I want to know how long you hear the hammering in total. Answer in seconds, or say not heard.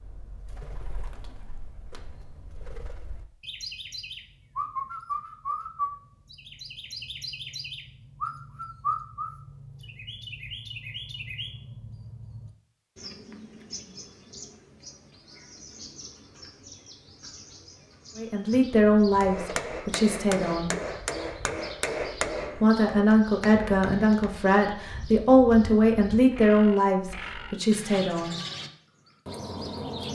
5 s.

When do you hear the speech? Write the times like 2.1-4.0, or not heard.
18.1-20.8, 22.5-28.4.